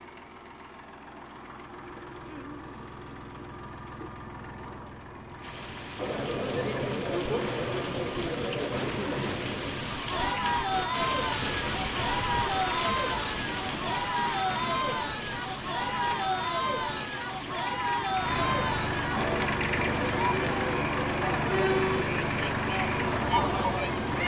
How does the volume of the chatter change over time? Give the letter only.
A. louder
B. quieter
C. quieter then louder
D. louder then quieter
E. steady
E.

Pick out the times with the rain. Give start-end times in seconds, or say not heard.
5.4-24.2.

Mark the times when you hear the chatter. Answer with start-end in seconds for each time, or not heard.
6.0-24.2.